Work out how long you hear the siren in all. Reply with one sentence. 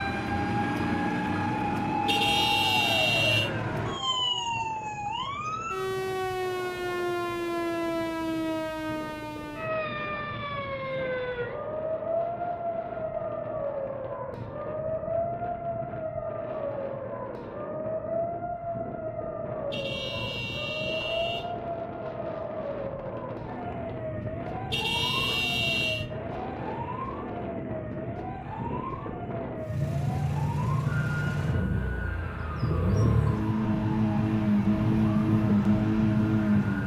You can hear the siren for 37 seconds altogether.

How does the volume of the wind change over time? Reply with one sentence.
The volume of the wind goes up.